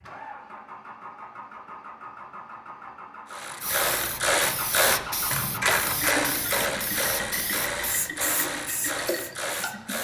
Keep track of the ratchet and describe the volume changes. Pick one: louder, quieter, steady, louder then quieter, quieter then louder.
quieter.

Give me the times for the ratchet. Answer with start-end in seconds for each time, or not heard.
3.3-9.9.